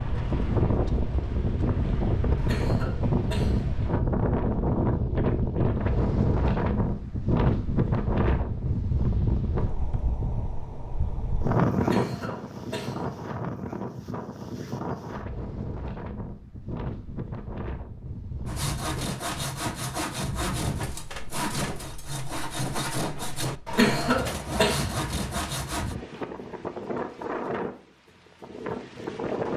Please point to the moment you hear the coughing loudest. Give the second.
24 s.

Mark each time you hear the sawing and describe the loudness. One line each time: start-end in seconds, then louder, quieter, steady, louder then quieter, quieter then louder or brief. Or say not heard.
18.4-25.9 steady.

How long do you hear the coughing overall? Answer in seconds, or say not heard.
4 s.